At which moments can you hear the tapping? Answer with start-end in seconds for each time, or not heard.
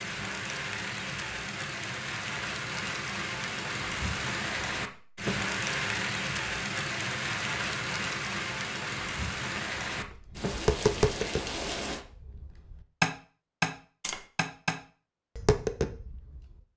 9.6-16.6.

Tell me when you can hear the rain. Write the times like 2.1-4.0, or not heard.
0.0-12.1.